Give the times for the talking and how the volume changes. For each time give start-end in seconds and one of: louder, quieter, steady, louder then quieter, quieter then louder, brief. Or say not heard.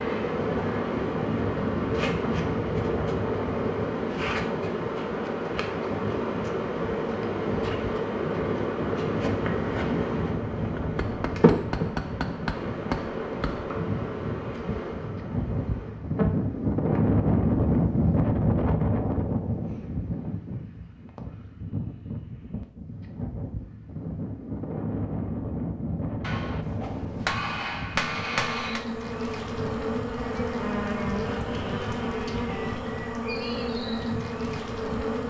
not heard.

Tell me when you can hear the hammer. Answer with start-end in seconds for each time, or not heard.
10.8-13.7, 26.2-28.9.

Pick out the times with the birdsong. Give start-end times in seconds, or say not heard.
not heard.